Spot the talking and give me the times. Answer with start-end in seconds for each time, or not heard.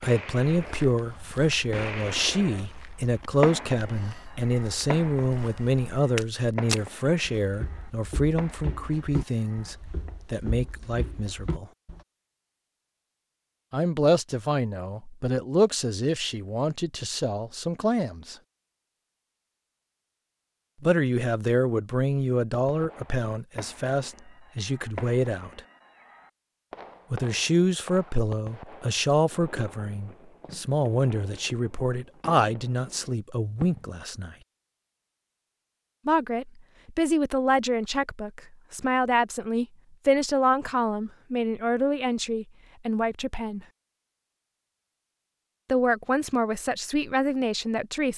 0.0-11.7, 13.7-18.4, 20.8-25.6, 27.1-34.4, 36.0-43.6, 45.6-48.1.